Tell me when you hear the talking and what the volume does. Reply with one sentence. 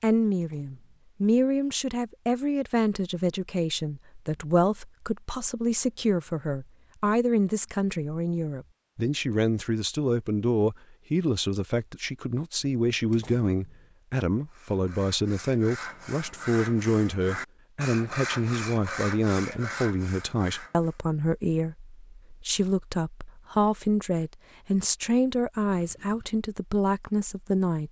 The talking can be heard from 0.0 to 27.8 s, at a steady volume.